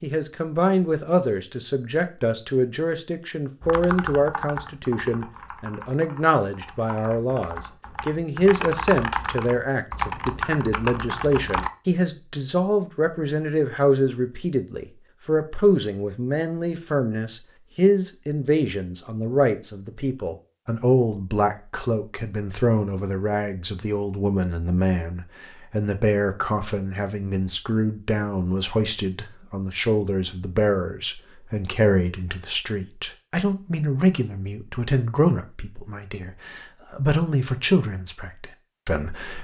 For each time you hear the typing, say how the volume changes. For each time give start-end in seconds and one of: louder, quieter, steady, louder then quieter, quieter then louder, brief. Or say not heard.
3.6-11.7 quieter then louder.